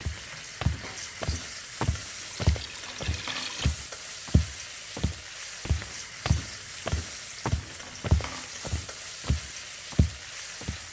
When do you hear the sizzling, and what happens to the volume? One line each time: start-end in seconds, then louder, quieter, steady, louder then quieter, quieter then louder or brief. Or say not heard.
0.0-10.8 steady.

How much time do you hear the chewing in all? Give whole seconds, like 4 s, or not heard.
not heard.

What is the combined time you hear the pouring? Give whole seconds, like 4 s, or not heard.
2 s.